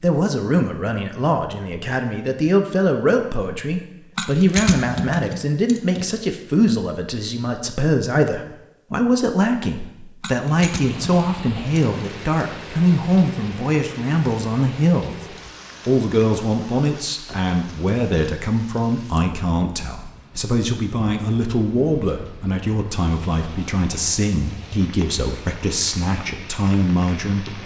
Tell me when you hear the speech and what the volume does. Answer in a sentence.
You can hear the speech from 0.0 to 15.2 s, at a steady volume; and from 15.8 to 27.6 s, at a steady volume.